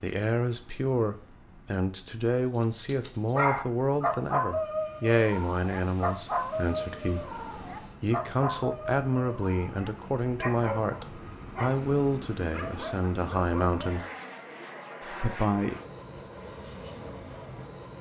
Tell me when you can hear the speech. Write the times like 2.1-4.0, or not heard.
0.0-14.1, 15.0-15.8.